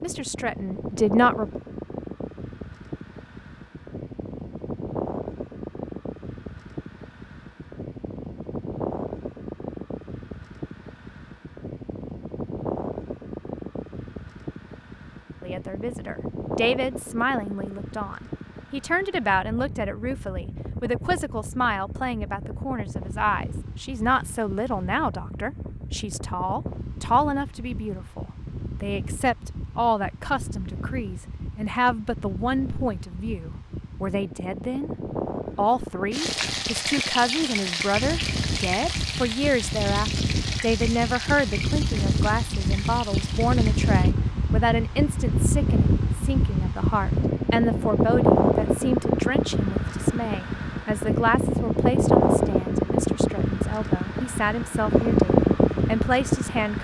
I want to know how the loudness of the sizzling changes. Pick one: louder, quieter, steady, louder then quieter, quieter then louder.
quieter.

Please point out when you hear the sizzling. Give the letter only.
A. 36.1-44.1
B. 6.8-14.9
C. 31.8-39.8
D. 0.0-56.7
A.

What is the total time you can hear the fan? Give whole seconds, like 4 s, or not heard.
57 s.